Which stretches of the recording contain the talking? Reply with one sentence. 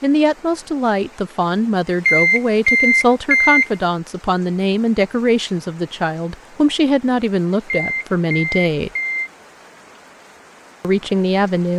The talking can be heard from 0.0 to 8.9 s and from 10.8 to 11.7 s.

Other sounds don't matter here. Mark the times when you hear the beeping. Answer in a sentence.
You can hear the beeping from 2.0 to 3.7 s and from 7.7 to 9.3 s.